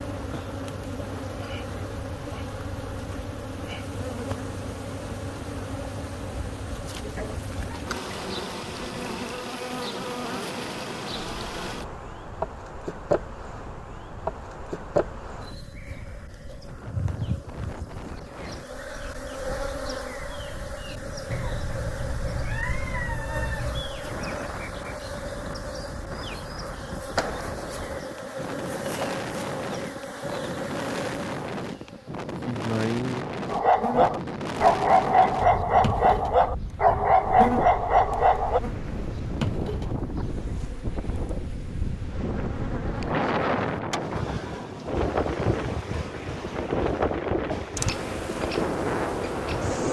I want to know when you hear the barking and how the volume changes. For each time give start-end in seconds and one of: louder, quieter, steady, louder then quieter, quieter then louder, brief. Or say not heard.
33.5-38.6 steady.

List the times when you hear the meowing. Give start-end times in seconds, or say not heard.
21.3-23.9.